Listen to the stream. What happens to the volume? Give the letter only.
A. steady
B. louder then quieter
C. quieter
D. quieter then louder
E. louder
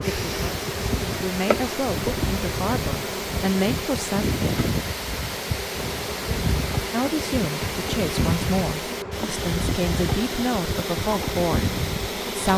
A.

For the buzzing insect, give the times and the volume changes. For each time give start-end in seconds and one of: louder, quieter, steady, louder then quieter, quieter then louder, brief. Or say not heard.
0.0-12.5 steady.